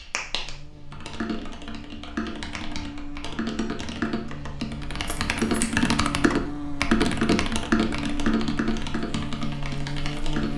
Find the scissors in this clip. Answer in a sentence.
You can hear the scissors from 5.0 to 5.7 s.